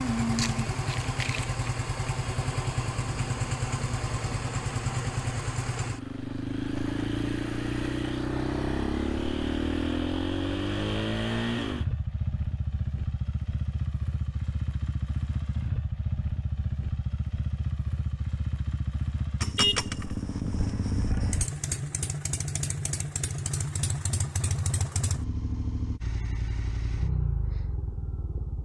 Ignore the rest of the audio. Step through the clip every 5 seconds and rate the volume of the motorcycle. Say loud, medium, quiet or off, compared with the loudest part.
loud, loud, loud, loud, loud, medium.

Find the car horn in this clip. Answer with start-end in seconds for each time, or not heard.
19.6-21.4.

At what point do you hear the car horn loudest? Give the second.
20 s.